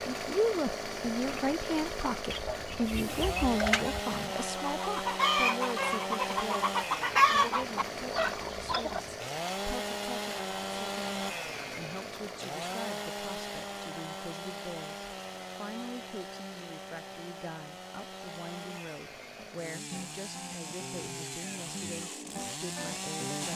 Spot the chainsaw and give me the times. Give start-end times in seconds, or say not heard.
0.0-23.5.